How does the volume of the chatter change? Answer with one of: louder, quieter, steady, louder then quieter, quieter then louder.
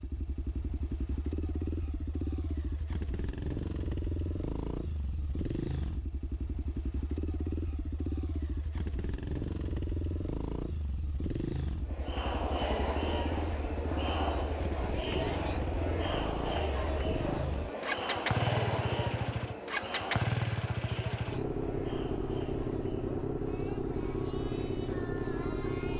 quieter.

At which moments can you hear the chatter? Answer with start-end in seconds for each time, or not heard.
11.8-25.9.